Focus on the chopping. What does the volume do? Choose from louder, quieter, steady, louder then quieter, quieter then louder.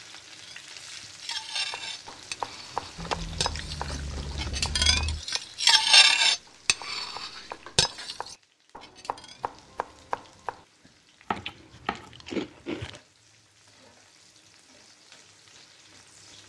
quieter then louder.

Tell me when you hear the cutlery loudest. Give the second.
6 s.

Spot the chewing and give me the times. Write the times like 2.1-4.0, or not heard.
3.0-5.2, 11.3-13.0.